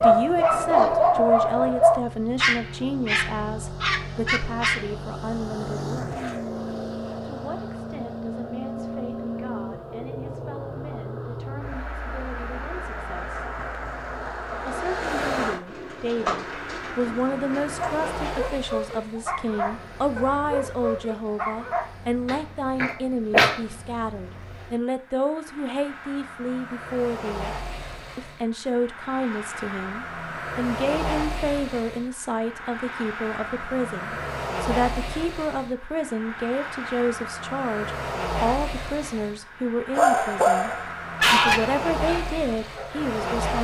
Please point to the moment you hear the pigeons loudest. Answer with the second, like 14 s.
16 s.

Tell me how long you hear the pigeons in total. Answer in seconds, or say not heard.
3 s.